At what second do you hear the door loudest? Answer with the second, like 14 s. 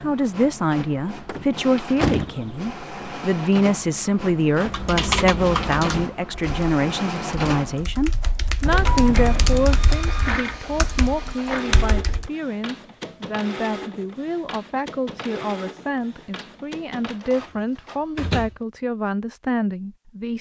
2 s.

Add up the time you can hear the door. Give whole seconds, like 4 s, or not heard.
3 s.